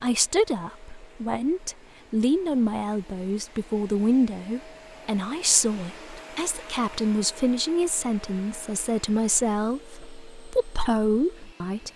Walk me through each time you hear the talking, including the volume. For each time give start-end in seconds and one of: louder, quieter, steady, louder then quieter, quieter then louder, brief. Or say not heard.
0.0-11.9 steady.